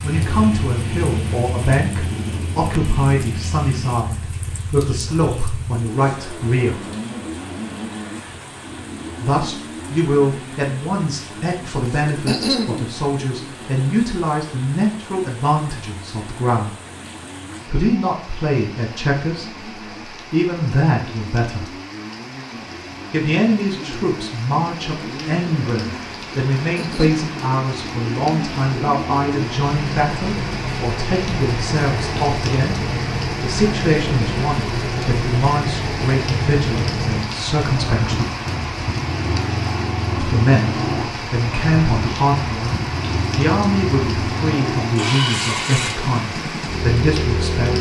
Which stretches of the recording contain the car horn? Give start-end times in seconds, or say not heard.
not heard.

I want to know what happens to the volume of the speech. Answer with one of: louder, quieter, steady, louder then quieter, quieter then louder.
steady.